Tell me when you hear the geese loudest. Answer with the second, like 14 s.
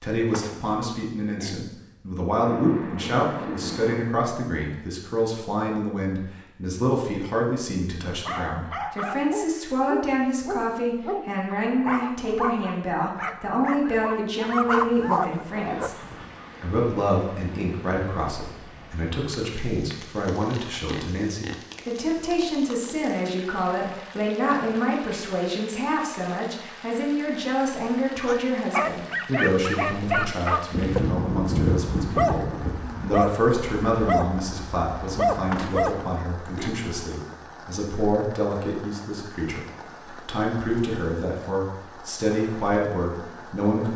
32 s.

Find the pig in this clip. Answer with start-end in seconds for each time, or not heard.
0.2-1.6, 20.5-22.1, 35.5-36.8.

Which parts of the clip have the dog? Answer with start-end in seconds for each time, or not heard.
8.2-15.9, 28.2-36.0.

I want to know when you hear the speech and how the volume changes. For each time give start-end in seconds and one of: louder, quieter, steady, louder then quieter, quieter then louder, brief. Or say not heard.
0.0-15.9 steady
16.6-43.9 steady.